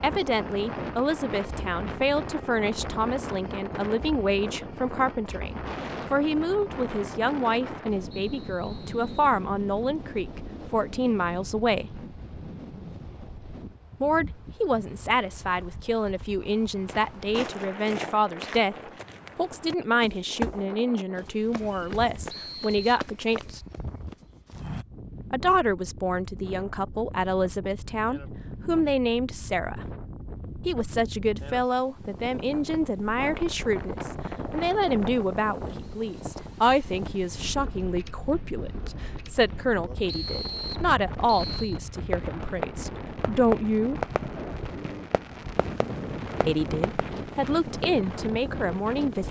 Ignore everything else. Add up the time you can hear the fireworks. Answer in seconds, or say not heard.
6 s.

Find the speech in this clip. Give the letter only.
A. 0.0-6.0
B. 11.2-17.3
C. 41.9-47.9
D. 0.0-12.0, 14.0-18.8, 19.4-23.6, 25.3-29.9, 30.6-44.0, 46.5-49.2
D.